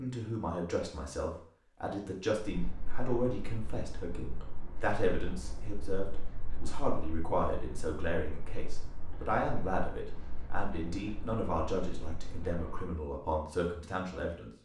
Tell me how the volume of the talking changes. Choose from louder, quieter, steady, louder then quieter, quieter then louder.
steady.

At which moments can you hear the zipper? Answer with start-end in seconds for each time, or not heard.
not heard.